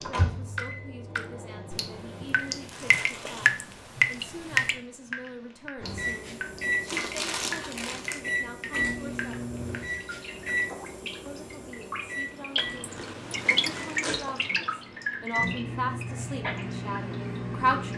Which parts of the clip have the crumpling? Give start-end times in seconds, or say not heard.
2.7-3.5, 6.8-8.2, 12.9-14.5.